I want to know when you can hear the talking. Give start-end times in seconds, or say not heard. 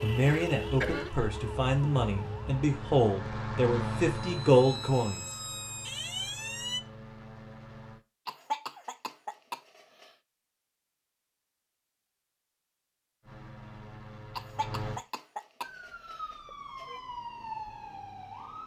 0.0-5.2.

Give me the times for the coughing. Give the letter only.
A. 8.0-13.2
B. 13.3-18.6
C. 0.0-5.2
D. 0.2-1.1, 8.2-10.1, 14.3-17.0
D.